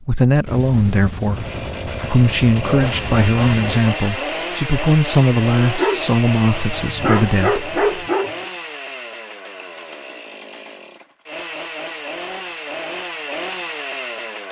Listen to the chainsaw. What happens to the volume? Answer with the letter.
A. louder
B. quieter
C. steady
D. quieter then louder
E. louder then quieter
D.